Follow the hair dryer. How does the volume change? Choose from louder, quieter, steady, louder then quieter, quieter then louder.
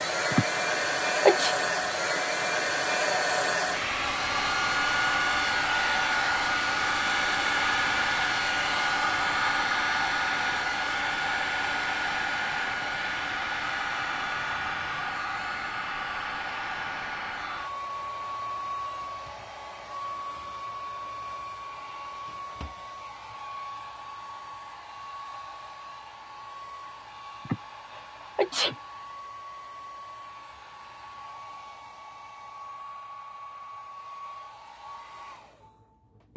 quieter.